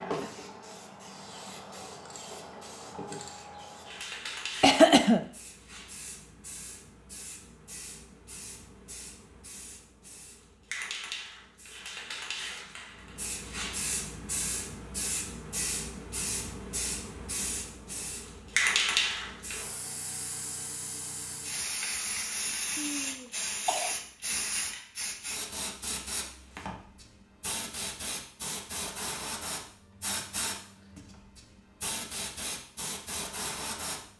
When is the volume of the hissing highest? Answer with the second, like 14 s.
19 s.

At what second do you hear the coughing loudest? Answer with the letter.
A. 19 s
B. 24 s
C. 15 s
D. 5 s
D.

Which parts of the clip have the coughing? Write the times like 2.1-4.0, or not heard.
4.6-5.2, 22.8-23.9.